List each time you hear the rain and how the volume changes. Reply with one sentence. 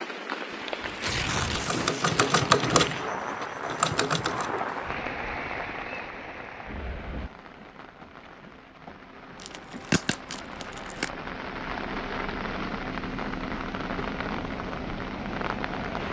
The rain can be heard from 0.0 to 16.0 s, getting quieter then louder.